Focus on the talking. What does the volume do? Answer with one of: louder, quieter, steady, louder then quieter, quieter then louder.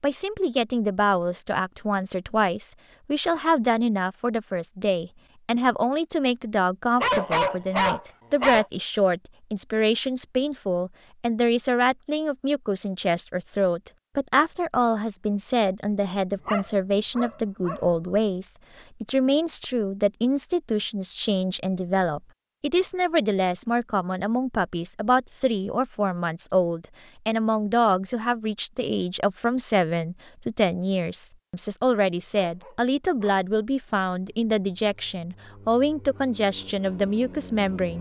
steady.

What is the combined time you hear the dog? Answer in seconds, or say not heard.
4 s.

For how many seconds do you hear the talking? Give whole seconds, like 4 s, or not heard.
38 s.